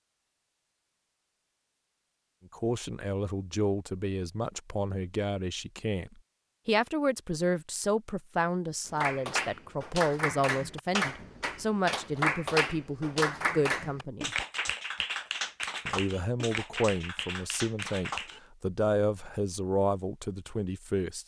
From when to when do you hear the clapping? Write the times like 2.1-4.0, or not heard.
8.8-18.4.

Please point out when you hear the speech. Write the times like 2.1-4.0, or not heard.
2.5-14.3, 15.8-21.2.